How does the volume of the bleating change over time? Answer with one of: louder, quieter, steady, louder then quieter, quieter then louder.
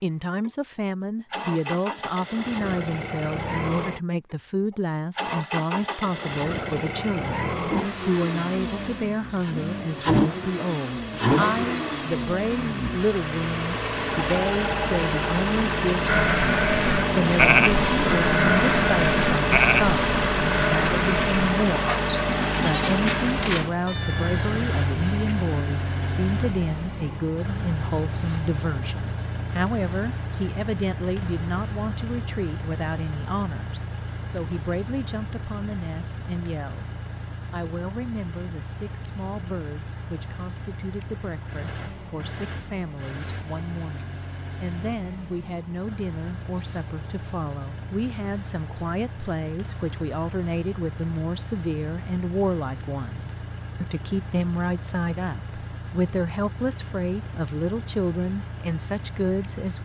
quieter.